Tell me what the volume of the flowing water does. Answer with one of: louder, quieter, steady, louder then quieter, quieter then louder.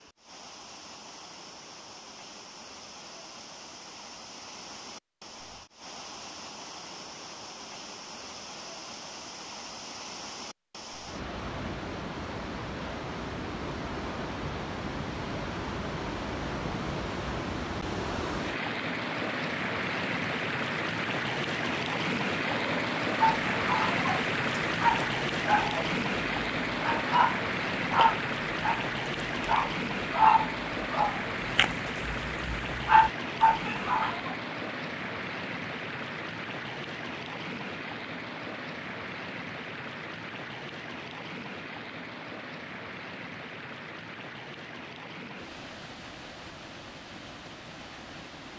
louder then quieter.